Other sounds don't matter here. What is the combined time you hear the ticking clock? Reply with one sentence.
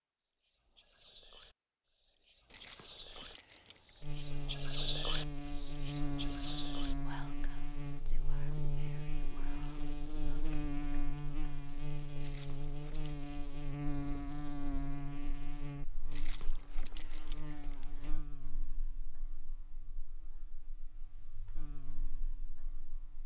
The ticking clock can't be heard in this clip.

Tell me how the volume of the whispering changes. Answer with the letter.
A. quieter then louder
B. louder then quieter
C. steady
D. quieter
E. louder
B.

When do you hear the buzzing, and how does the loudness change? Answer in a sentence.
You can hear the buzzing from 4.0 to 23.2 s, getting quieter.